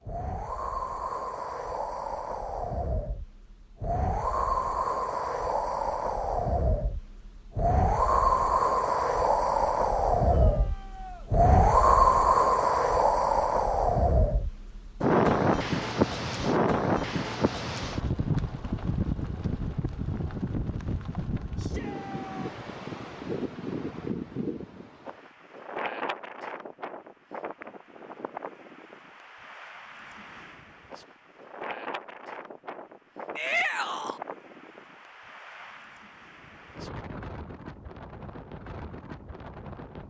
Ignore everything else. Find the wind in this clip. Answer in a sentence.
The wind can be heard from 0.0 to 40.0 s.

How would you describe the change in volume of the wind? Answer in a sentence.
The loudness of the wind goes up, then down.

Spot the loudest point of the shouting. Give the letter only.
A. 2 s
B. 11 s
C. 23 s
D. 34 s
D.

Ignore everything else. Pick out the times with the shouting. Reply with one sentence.
The shouting can be heard from 10.2 to 11.3 s, from 21.6 to 22.4 s and from 33.4 to 34.2 s.